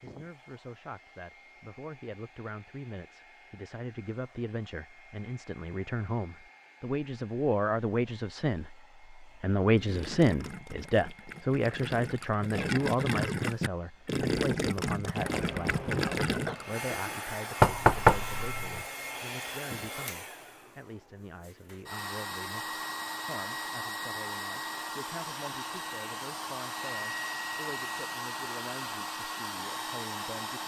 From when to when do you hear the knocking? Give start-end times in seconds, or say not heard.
17.6-18.8.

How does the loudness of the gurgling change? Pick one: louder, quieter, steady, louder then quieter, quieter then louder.
louder.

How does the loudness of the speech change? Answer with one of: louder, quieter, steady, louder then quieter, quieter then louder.
louder then quieter.